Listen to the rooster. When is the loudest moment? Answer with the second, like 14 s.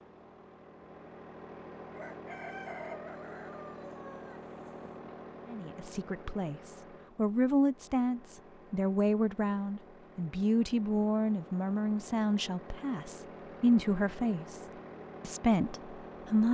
3 s.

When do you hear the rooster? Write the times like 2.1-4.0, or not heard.
1.9-4.9.